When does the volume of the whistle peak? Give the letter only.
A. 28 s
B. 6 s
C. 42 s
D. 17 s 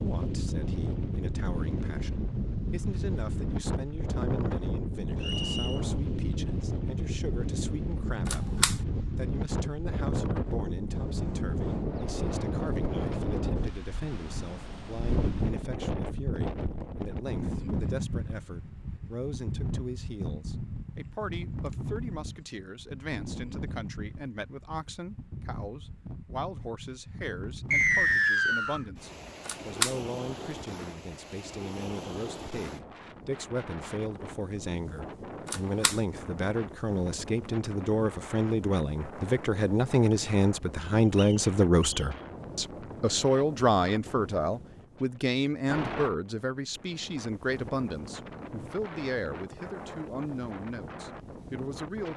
A.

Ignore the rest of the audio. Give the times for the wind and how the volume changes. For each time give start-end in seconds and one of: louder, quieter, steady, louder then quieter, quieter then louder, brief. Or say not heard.
0.0-52.1 quieter.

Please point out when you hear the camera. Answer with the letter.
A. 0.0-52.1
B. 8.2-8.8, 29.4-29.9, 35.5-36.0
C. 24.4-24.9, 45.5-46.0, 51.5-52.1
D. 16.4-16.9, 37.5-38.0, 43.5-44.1
B.